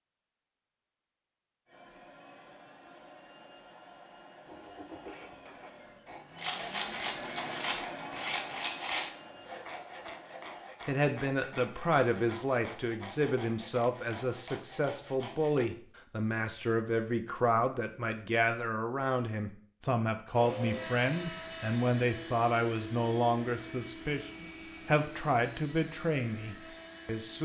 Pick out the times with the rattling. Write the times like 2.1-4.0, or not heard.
6.3-9.1.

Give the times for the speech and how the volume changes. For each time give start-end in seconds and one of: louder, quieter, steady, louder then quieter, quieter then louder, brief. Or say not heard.
10.8-27.3 steady.